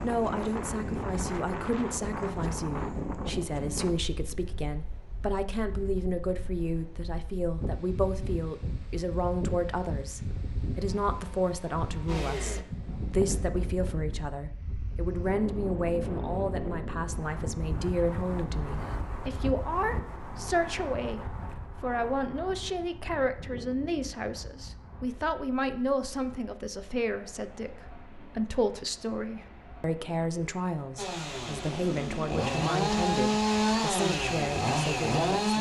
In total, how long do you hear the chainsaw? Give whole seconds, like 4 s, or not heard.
6 s.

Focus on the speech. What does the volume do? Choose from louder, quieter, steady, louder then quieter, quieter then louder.
steady.